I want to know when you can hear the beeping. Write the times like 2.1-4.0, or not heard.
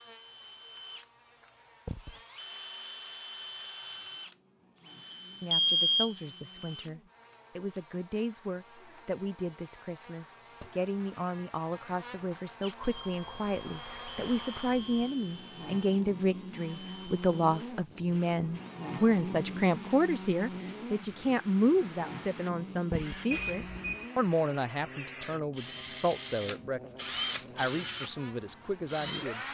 5.5-6.2, 12.8-15.2, 23.3-24.1.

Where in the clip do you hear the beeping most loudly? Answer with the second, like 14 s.
6 s.